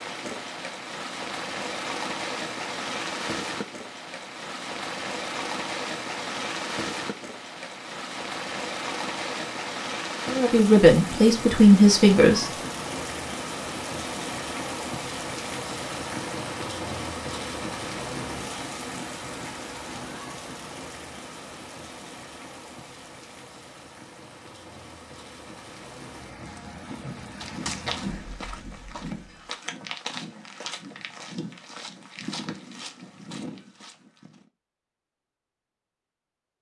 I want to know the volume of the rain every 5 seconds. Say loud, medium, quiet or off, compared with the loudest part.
loud, loud, loud, loud, medium, medium, off, off.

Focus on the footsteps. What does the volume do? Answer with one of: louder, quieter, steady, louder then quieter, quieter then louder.
quieter.